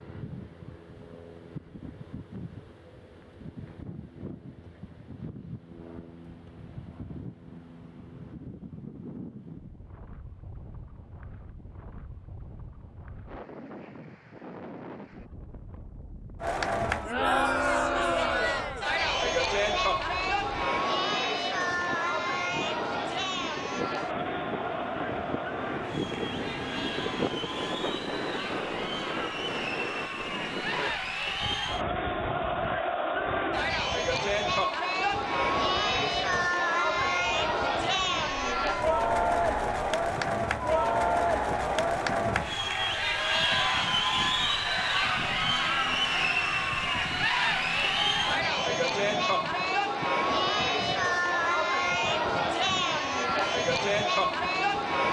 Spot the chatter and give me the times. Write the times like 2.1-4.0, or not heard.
16.4-55.0.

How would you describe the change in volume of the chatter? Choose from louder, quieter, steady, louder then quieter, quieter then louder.
quieter then louder.